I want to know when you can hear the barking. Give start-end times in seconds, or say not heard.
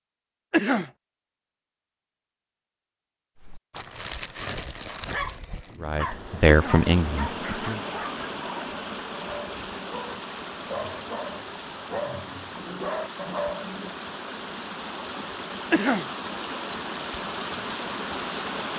3.4-13.9.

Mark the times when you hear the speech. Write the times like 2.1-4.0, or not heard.
5.8-7.8.